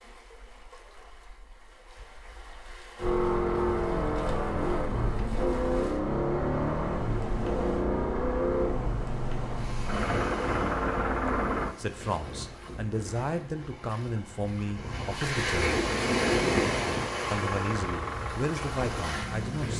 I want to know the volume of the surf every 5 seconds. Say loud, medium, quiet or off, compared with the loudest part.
quiet, quiet, quiet, loud.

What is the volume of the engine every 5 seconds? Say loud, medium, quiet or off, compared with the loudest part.
loud, loud, loud, medium.